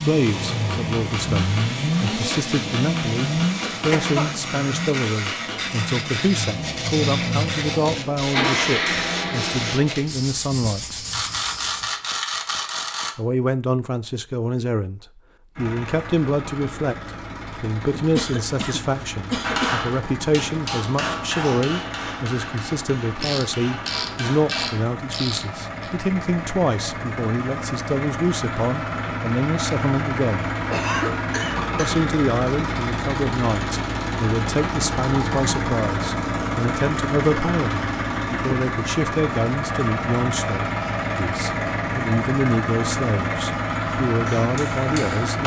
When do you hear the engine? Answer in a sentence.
The engine can be heard from 0.0 to 10.1 s and from 15.6 to 45.4 s.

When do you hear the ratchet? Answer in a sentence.
You can hear the ratchet from 11.1 to 13.2 s and from 23.1 to 25.9 s.